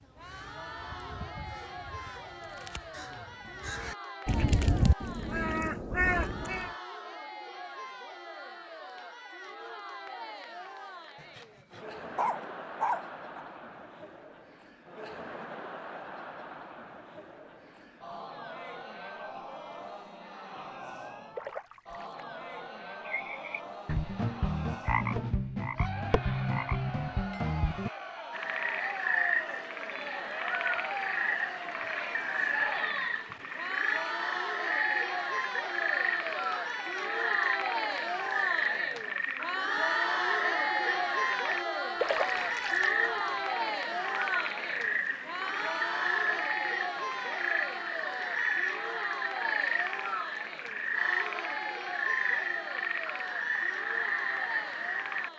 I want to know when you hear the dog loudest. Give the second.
13 s.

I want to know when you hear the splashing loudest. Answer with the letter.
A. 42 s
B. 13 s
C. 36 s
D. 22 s
A.